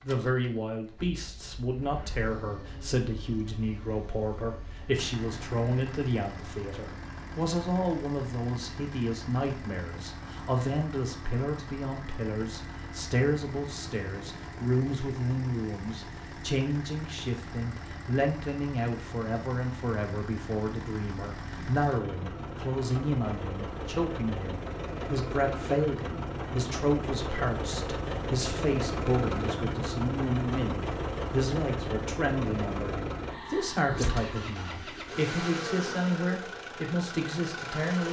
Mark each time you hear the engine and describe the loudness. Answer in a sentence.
The engine can be heard from 0.0 to 38.0 s, getting louder.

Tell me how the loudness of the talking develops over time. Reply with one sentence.
The loudness of the talking stays about the same.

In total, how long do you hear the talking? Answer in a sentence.
The talking can be heard for 38 seconds in total.